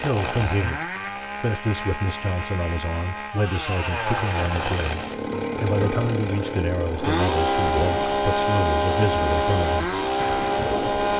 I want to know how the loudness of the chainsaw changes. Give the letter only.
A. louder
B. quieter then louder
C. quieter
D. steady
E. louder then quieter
A.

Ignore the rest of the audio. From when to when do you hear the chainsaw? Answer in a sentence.
The chainsaw can be heard from 0.0 to 11.1 s.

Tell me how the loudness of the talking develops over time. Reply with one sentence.
The loudness of the talking stays about the same.